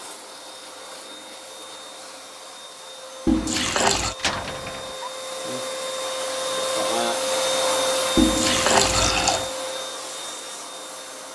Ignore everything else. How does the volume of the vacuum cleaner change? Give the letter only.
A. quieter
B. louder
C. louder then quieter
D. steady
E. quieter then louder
C.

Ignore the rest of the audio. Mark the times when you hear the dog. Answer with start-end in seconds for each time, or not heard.
not heard.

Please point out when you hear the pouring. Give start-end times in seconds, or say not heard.
3.2-4.2, 8.2-9.5.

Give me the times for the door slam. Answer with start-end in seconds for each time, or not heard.
4.2-5.0.